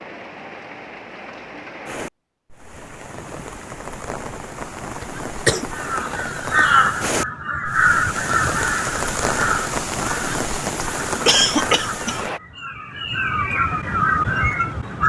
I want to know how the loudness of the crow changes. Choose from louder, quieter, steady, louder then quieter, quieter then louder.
quieter then louder.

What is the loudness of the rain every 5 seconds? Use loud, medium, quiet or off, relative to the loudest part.
medium, loud, loud.